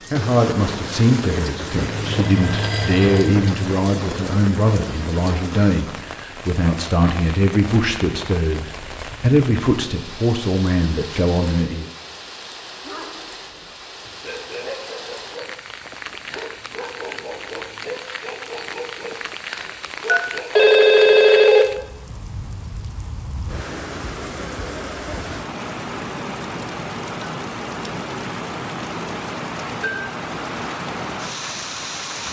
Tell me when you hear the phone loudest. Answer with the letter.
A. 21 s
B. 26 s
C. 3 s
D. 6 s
A.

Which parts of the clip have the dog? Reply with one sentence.
The dog can be heard from 12.8 to 20.8 s.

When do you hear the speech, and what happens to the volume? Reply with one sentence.
The speech can be heard from 0.1 to 11.8 s, at a steady volume.